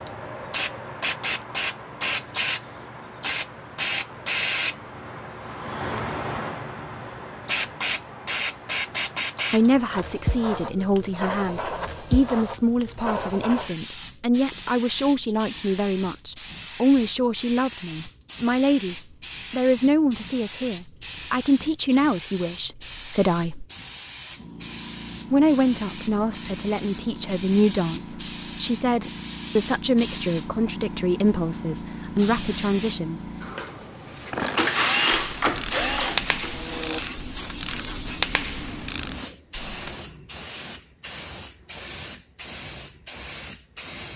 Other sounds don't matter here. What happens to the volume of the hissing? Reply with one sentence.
The volume of the hissing goes down.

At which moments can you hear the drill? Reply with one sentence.
You can hear the drill from 34.4 to 37.0 s.